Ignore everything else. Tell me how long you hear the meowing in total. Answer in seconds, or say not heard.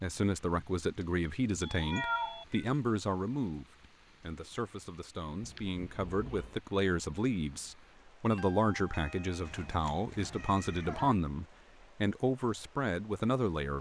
4 s.